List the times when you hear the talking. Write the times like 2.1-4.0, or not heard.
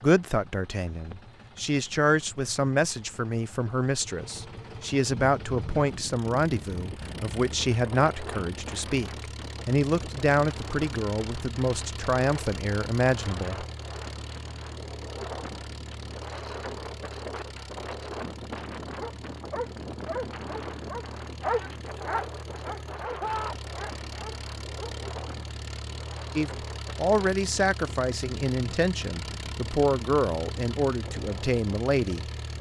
0.0-13.7, 26.4-32.2.